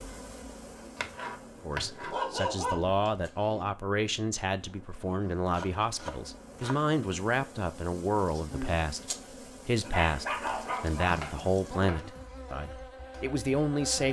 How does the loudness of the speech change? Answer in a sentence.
The volume of the speech stays about the same.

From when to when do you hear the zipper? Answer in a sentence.
You can't hear the zipper here.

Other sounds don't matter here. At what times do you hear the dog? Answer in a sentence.
The dog can be heard from 1.8 to 3.6 s and from 9.8 to 11.2 s.